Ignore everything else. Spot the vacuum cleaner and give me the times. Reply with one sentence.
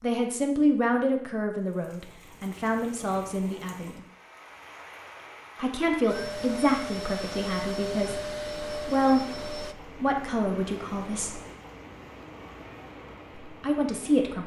You can hear the vacuum cleaner from 6.0 to 9.8 s.